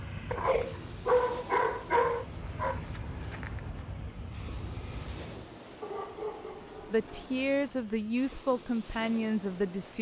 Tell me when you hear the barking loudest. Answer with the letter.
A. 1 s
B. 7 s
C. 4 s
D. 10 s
A.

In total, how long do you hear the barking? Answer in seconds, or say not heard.
4 s.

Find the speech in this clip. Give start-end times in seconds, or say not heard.
6.9-9.9.